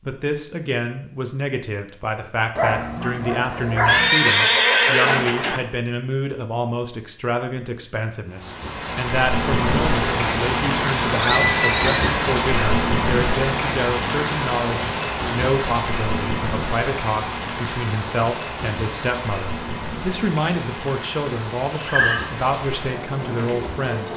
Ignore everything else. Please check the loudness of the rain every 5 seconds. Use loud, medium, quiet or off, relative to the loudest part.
off, loud, loud, medium, medium.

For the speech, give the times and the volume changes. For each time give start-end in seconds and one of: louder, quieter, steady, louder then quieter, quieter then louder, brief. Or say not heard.
0.0-24.1 steady.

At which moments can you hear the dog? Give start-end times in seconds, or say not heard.
2.5-4.1.